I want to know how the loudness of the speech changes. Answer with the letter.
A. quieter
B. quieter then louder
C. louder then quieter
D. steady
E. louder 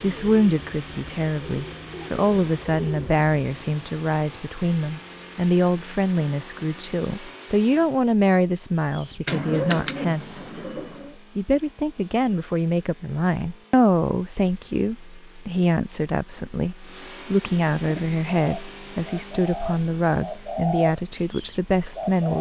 D.